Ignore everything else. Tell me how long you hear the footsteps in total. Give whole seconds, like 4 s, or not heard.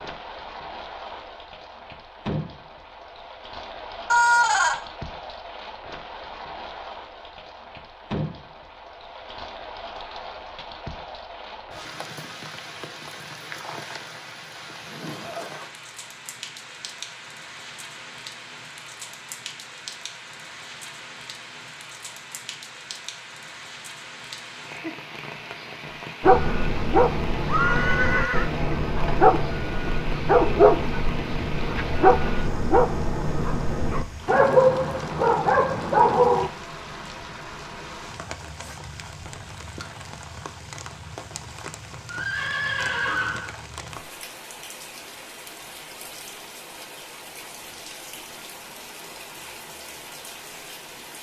not heard.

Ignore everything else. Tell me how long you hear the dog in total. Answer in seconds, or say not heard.
10 s.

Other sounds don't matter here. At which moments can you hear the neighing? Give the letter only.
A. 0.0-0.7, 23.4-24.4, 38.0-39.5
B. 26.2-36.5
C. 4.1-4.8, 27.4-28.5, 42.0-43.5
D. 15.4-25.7
C.